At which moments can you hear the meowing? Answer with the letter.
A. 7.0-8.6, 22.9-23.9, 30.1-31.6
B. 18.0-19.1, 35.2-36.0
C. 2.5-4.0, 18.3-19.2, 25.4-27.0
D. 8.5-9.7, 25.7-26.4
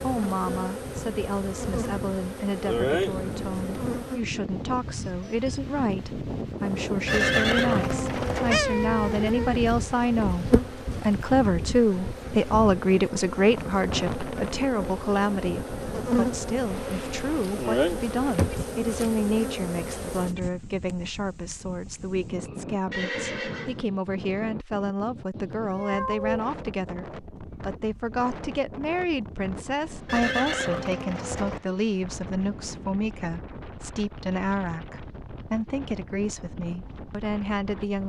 D.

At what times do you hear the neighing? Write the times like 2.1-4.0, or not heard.
7.0-8.6, 22.9-23.9, 30.1-31.6.